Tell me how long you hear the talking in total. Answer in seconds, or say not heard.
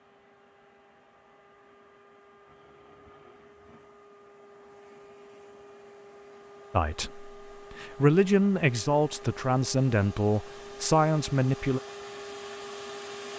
5 s.